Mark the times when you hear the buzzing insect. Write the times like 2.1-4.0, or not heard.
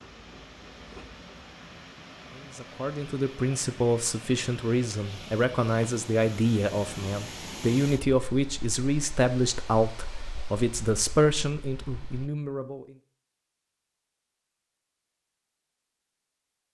0.0-1.6.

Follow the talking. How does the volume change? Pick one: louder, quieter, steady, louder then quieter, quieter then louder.
steady.